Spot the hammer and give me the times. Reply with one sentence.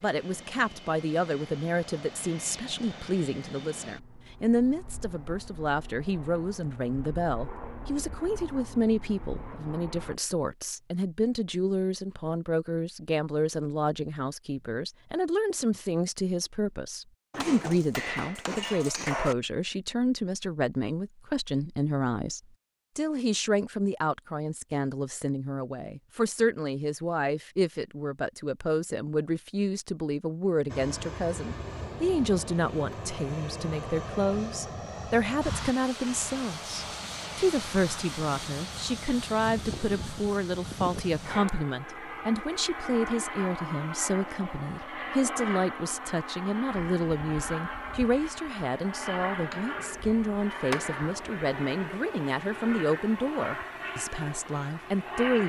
The hammer can be heard from 17.3 to 19.4 s and from 49.5 to 51.1 s.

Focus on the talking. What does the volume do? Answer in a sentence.
The volume of the talking stays about the same.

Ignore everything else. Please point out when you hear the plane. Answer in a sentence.
You can hear the plane from 0.0 to 10.2 s and from 30.6 to 55.4 s.